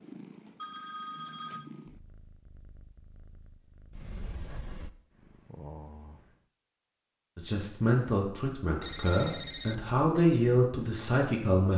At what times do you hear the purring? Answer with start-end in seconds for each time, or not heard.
0.0-6.5.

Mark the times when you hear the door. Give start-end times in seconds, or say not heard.
3.9-4.9.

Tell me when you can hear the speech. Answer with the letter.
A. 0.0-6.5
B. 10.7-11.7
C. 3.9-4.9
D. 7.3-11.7
D.